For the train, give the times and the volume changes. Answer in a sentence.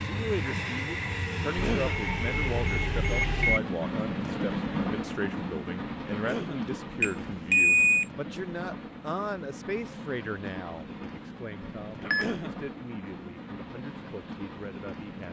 You can hear the train from 0.0 to 15.2 s, getting quieter.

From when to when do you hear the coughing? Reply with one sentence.
The coughing can be heard from 1.4 to 2.0 s, from 6.0 to 6.6 s and from 12.0 to 12.6 s.